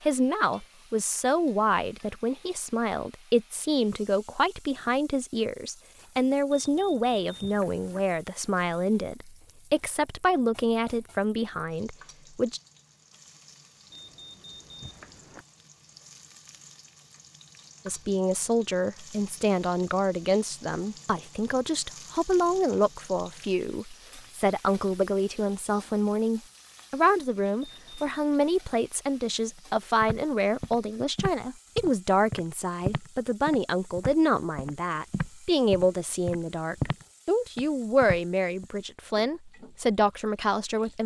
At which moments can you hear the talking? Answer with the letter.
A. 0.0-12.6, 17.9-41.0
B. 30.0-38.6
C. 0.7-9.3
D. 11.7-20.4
A.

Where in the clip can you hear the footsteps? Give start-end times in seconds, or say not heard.
30.0-38.6.